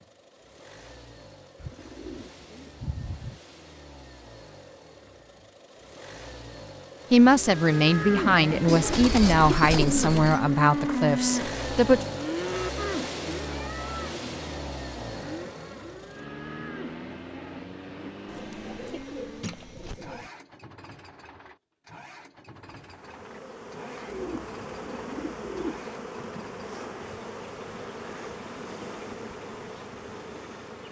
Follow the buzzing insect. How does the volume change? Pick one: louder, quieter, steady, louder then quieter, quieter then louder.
steady.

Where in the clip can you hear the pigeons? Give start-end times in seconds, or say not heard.
1.6-3.4, 8.7-10.4, 18.2-20.3, 24.1-25.9.